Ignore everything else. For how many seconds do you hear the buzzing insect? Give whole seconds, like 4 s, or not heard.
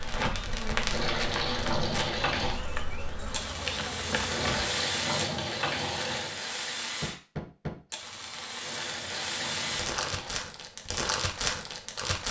5 s.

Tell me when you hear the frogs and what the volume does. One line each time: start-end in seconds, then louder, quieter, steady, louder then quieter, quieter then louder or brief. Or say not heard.
not heard.